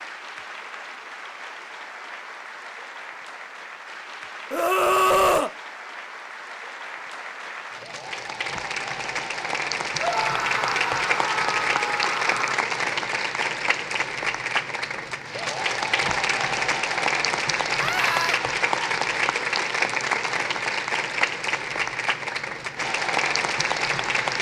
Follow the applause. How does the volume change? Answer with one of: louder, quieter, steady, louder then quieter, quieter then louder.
louder.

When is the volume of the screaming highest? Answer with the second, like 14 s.
5 s.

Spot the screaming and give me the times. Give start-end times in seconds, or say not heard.
4.5-5.5, 9.9-12.6, 17.8-18.4.